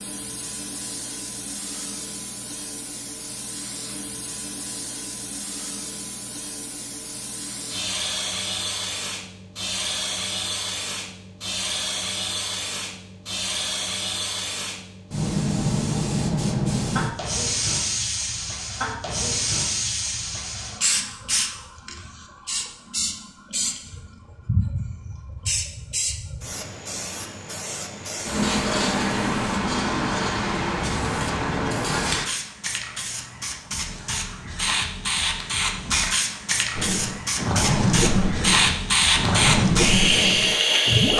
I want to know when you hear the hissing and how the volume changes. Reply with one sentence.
You can hear the hissing from 0.0 to 41.1 s, getting louder.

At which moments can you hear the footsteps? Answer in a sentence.
You can't hear the footsteps here.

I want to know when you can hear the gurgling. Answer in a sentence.
The gurgling can be heard from 36.8 to 41.1 s.